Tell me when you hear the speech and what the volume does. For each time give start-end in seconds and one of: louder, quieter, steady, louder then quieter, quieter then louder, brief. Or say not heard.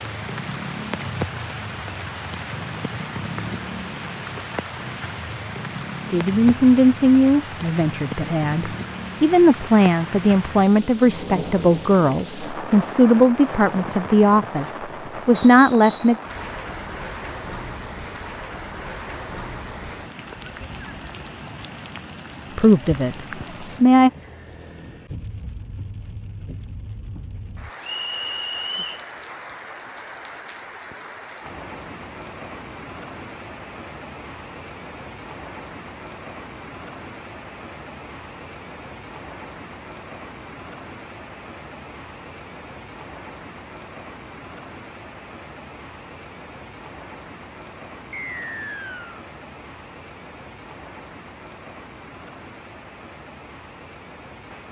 6.1-16.1 steady
22.6-24.1 brief.